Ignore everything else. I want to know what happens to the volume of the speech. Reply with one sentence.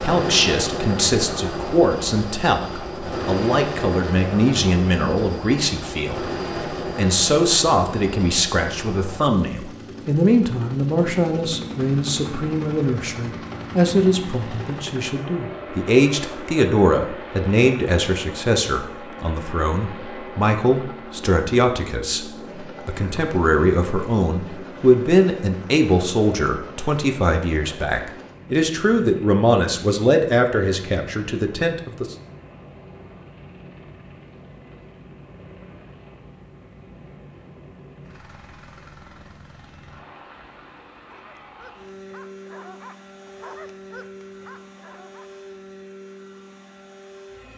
The loudness of the speech stays about the same.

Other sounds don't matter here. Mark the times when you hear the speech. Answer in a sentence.
You can hear the speech from 0.0 to 32.1 s.